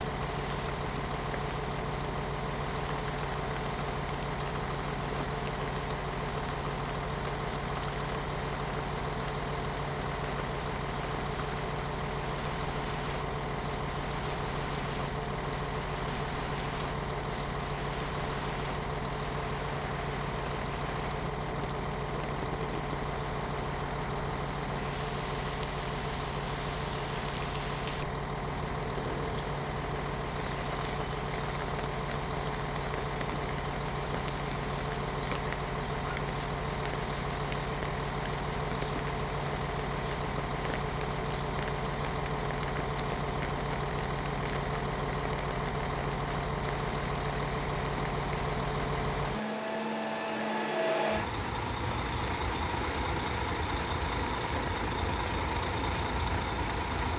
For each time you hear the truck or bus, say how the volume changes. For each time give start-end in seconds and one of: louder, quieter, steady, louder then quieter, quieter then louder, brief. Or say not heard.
0.0-57.1 steady.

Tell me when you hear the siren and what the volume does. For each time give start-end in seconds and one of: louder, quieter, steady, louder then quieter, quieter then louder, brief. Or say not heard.
not heard.